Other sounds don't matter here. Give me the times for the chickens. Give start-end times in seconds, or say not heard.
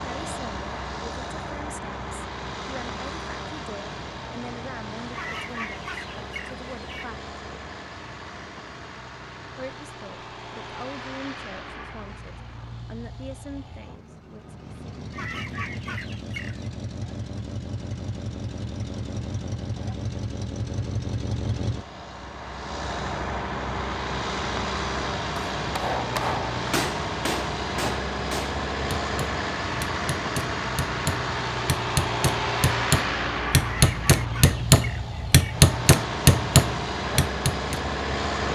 5.1-7.1, 15.1-16.7, 33.6-35.6.